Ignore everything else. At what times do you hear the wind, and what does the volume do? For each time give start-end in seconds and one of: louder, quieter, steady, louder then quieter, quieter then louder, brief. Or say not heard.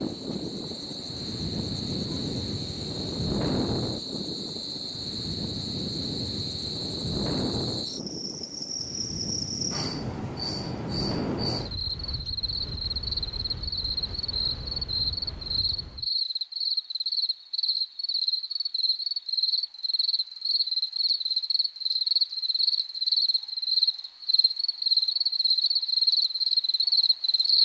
0.0-16.1 quieter.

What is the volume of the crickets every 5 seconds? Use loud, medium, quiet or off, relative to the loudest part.
quiet, medium, medium, medium, loud, loud.